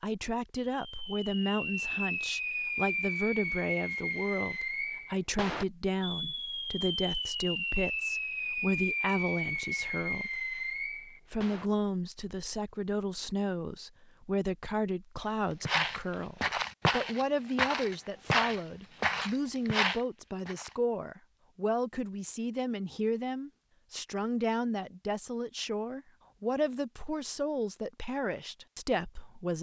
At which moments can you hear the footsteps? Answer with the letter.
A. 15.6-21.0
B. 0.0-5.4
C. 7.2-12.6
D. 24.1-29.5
A.